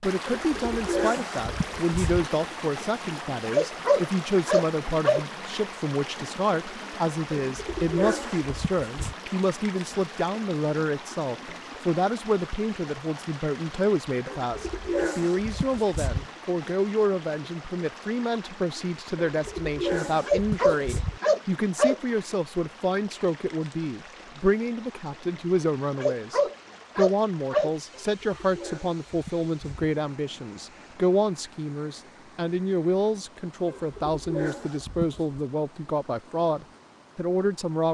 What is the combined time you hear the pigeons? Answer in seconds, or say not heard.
11 s.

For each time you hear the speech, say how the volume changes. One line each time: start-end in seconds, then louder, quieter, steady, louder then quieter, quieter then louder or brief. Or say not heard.
0.0-37.8 steady.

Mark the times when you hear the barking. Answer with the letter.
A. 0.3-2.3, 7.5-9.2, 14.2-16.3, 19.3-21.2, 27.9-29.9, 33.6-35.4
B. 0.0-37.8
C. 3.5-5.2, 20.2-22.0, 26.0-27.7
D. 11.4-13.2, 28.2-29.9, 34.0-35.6
C.